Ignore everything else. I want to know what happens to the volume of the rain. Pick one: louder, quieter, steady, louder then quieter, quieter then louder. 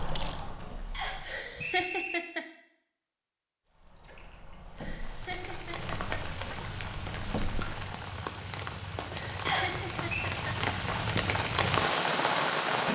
louder.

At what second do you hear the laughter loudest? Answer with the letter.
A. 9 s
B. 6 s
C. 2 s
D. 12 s
C.